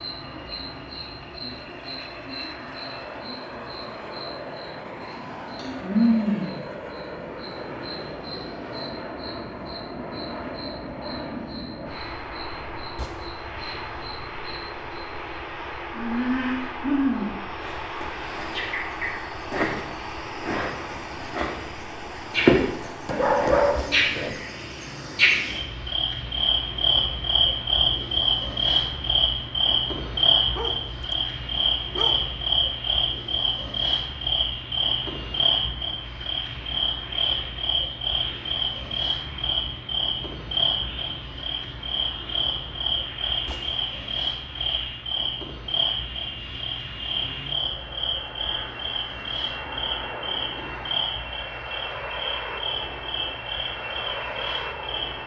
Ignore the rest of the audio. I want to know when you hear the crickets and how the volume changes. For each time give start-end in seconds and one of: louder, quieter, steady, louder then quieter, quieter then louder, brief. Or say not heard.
0.0-55.2 louder then quieter.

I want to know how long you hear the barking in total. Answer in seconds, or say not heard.
3 s.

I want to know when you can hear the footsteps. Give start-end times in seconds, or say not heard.
not heard.